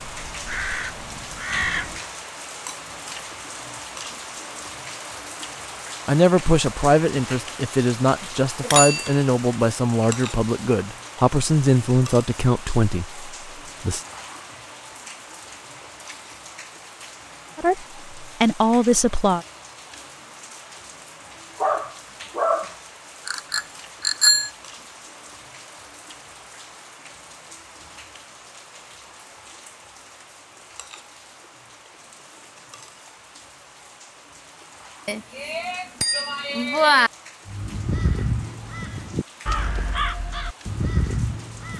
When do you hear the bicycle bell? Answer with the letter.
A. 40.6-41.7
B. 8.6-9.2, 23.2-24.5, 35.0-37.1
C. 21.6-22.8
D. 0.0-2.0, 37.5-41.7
B.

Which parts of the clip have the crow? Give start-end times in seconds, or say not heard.
0.0-2.0, 37.5-41.7.